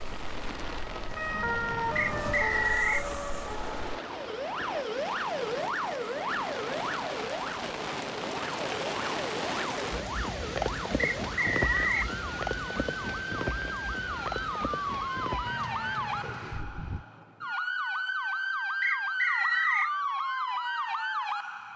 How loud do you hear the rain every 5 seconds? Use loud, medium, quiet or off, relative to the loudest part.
medium, loud, loud, medium, off.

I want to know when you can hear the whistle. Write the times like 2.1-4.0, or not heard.
1.9-3.0, 11.2-12.1, 18.8-19.9.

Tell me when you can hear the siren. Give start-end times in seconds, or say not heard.
0.0-21.7.